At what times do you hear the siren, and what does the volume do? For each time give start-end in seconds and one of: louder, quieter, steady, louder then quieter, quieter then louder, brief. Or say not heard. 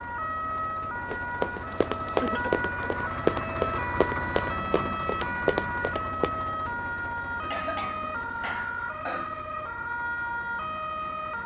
0.0-11.4 steady.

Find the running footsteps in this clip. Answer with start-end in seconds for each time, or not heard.
1.1-6.3.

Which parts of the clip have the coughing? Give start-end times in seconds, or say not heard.
2.2-2.7, 7.4-9.4.